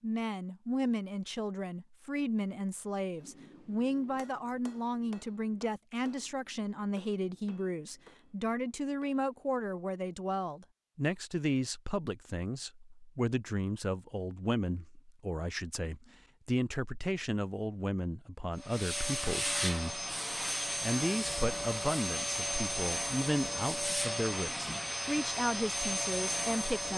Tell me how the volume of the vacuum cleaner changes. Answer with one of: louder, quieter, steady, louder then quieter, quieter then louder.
steady.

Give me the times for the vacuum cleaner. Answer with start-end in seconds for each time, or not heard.
18.6-26.9.